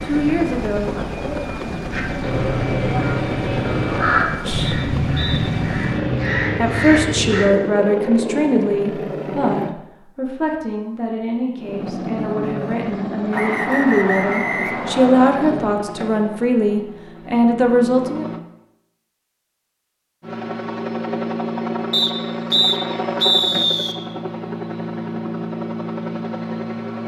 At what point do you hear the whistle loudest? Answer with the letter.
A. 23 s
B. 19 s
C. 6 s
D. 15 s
A.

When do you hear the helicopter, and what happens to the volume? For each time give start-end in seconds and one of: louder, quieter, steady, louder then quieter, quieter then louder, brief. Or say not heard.
0.0-9.8 steady
11.6-18.4 quieter
20.2-27.0 steady.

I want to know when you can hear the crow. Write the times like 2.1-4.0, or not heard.
1.9-7.5.